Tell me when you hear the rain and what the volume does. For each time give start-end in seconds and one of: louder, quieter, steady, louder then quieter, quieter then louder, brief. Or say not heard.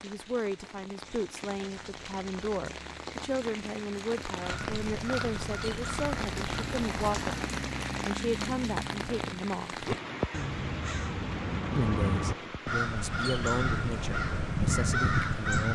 0.0-15.7 louder then quieter.